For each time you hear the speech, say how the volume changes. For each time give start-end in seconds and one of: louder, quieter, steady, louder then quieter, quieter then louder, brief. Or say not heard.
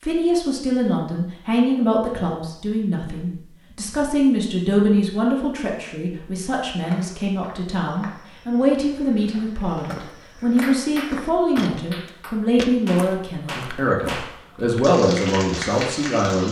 0.0-16.4 steady.